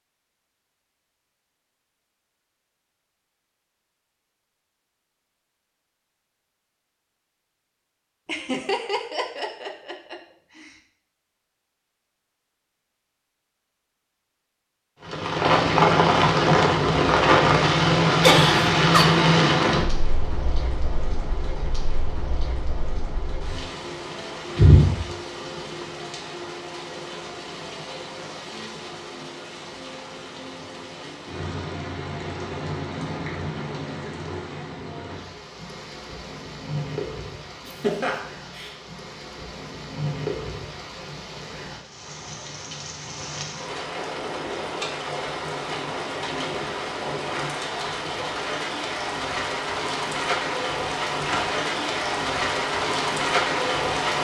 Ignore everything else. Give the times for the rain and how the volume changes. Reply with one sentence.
You can hear the rain from 15.0 to 54.1 s, getting quieter then louder.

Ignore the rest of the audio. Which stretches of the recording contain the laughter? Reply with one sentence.
The laughter can be heard from 8.2 to 10.7 s, from 18.2 to 19.1 s and from 37.6 to 38.8 s.